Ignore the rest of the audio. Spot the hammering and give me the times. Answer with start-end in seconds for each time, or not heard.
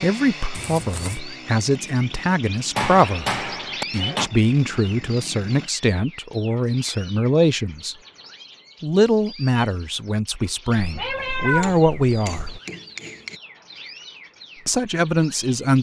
2.8-4.3, 11.6-13.4.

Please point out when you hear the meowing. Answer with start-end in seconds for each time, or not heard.
0.6-1.2, 10.8-12.6.